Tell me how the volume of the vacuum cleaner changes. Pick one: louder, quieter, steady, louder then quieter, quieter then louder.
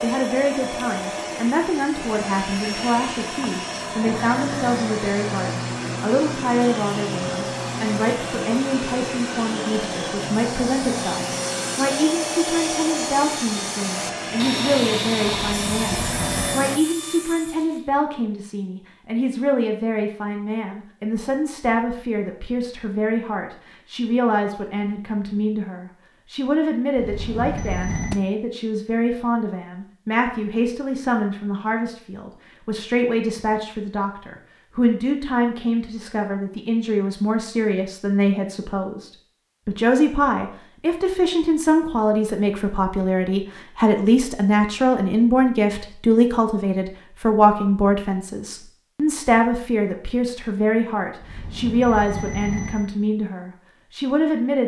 steady.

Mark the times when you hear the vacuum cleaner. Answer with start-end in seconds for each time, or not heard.
0.0-16.8.